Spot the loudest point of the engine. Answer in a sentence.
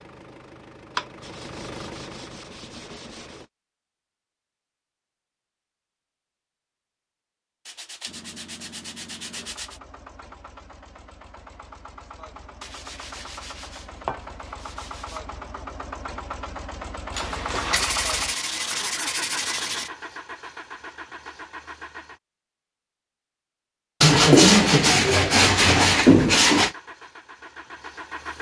The volume of the engine peaks at 18 seconds.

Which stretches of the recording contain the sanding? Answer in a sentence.
You can hear the sanding from 0.9 to 3.5 s, from 7.7 to 9.8 s, from 12.6 to 15.2 s, from 17.1 to 19.9 s and from 24.0 to 26.7 s.